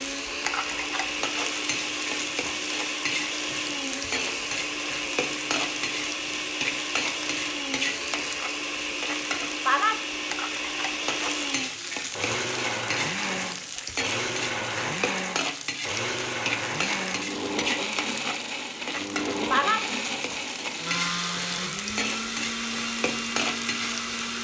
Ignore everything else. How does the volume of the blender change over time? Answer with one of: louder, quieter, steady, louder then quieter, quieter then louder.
steady.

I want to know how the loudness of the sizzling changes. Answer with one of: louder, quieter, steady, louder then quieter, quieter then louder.
steady.